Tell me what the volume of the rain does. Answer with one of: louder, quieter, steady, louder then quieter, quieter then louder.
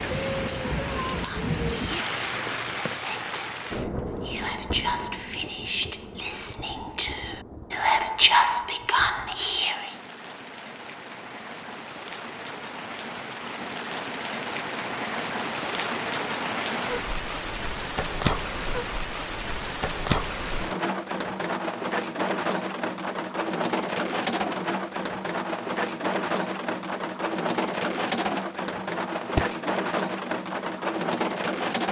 quieter then louder.